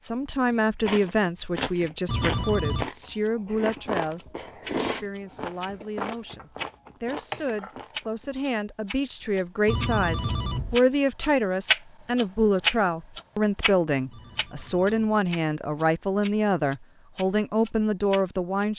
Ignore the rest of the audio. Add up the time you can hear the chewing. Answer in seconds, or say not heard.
8 s.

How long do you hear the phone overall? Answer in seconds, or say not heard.
3 s.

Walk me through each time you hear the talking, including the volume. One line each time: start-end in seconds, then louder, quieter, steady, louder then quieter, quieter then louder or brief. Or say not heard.
0.0-18.7 quieter then louder.